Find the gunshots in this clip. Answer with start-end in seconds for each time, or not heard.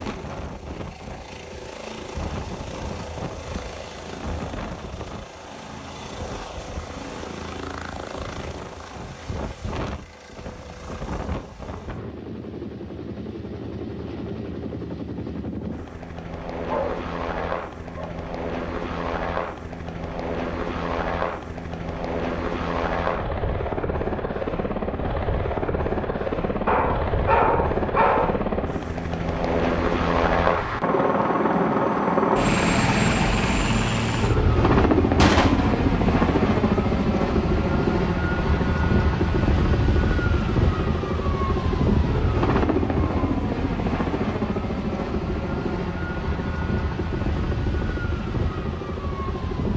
35.1-35.8.